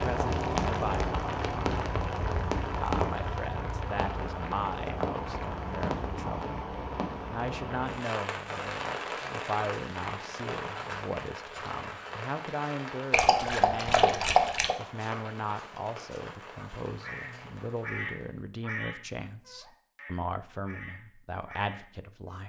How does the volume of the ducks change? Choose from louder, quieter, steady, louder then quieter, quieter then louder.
quieter then louder.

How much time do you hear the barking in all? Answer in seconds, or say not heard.
2 s.